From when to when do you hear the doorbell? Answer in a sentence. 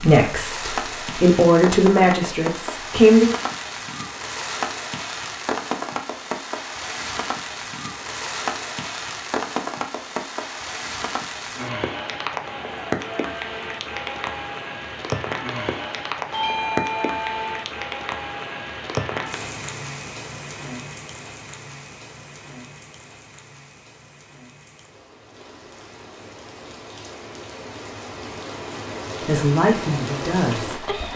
The doorbell can be heard from 16.3 to 17.4 s.